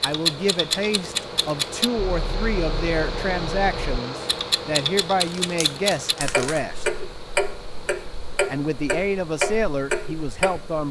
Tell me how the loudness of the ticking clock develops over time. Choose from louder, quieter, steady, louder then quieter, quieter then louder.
quieter then louder.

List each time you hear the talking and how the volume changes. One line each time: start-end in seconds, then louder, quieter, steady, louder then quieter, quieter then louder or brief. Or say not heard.
0.0-6.8 steady
8.5-10.8 brief.